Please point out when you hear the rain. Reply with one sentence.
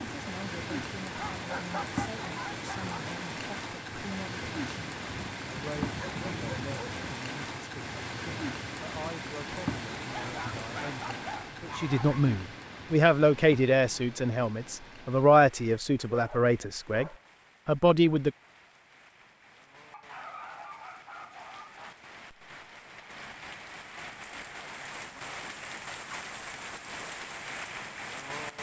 You can hear the rain from 0.0 to 28.5 s.